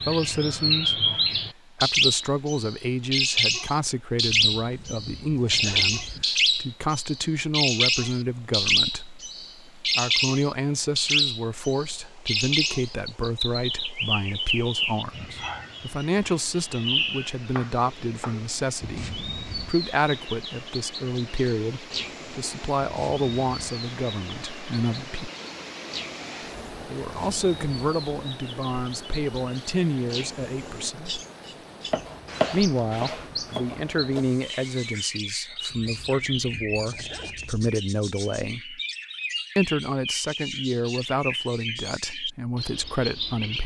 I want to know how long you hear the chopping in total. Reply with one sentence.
The chopping can be heard for 3 seconds in total.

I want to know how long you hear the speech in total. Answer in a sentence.
The speech can be heard for 39 seconds in total.